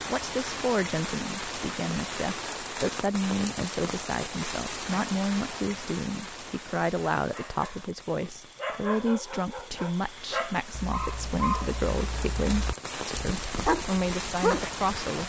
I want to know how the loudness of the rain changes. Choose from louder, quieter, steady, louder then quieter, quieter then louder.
quieter then louder.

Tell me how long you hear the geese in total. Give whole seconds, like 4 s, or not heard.
not heard.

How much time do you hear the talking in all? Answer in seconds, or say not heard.
15 s.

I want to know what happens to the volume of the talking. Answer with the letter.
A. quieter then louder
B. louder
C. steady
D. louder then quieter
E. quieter
C.